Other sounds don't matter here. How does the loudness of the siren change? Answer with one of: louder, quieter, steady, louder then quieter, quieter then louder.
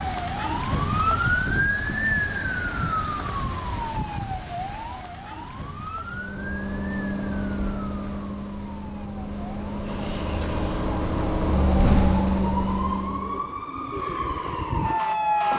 quieter then louder.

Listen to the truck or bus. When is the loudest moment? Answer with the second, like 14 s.
12 s.